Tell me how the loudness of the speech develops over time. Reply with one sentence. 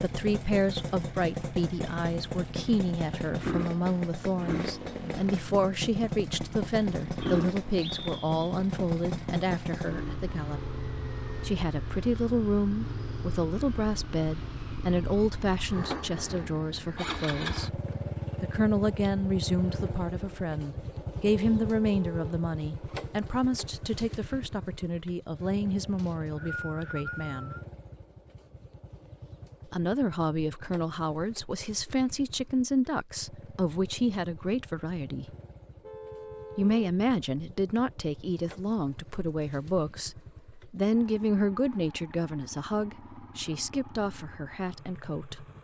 The volume of the speech stays about the same.